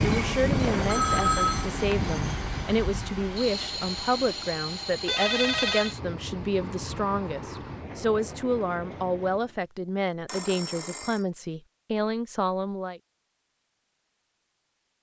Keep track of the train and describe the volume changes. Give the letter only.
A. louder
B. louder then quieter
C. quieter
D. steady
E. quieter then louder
C.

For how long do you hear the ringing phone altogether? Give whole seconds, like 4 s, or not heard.
3 s.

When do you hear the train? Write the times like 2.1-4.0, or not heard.
0.0-9.6.